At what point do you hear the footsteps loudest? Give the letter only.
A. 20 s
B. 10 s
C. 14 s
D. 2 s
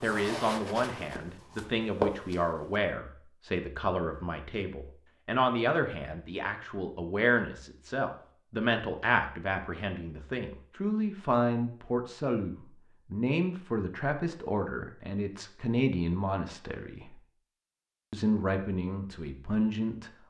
D.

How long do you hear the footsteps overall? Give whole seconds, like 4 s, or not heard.
3 s.